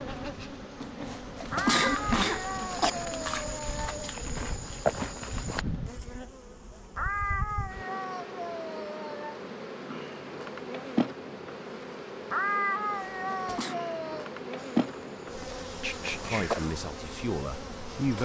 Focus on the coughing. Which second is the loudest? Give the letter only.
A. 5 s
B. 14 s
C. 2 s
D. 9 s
C.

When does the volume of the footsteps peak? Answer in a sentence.
The volume of the footsteps peaks at 5 seconds.